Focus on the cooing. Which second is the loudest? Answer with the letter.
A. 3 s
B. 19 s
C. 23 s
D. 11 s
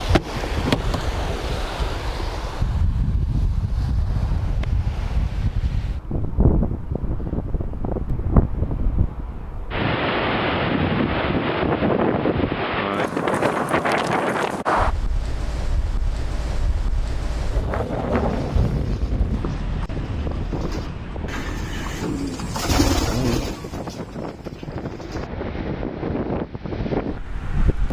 C.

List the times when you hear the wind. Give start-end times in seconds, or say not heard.
0.0-27.8.